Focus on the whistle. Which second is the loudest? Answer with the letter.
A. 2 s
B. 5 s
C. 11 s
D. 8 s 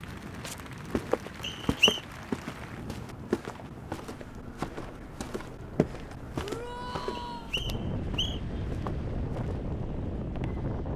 A.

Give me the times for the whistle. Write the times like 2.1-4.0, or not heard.
1.4-2.0, 7.3-8.4.